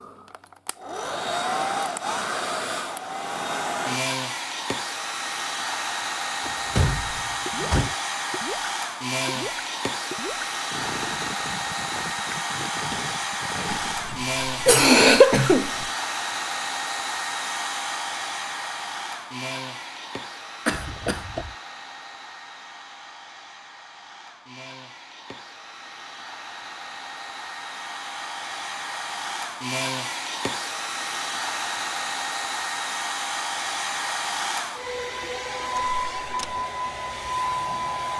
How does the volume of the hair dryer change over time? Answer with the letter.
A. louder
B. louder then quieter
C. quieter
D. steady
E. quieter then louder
E.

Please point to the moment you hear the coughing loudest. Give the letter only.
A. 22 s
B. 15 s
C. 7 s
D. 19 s
B.